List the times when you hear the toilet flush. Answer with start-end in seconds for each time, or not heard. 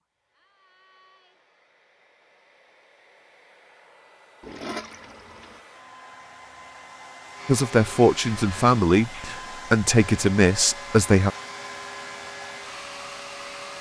4.4-5.6.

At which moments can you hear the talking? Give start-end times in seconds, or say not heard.
7.5-11.3.